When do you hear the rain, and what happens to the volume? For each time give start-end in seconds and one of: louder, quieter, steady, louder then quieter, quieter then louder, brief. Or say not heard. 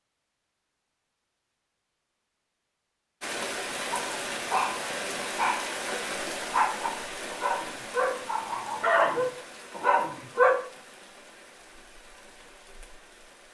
3.2-13.4 quieter.